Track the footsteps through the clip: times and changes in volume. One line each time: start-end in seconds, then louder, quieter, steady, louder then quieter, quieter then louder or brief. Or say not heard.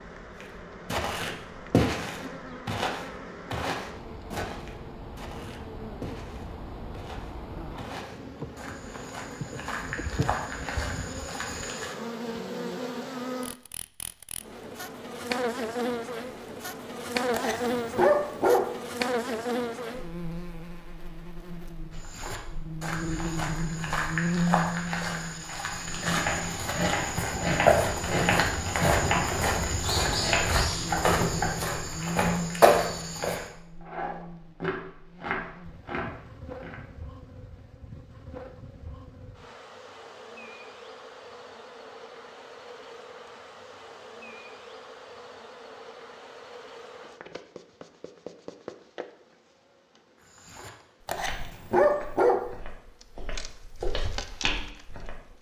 0.4-11.9 quieter then louder
21.9-33.5 louder
50.2-55.3 quieter then louder.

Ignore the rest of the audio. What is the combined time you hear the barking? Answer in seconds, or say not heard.
3 s.